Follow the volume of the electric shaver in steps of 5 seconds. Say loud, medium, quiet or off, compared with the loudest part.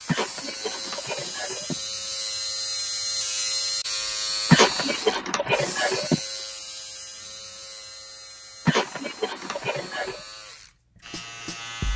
loud, medium, medium.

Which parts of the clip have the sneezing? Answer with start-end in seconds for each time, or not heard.
0.1-1.8, 4.5-6.2, 8.7-10.2.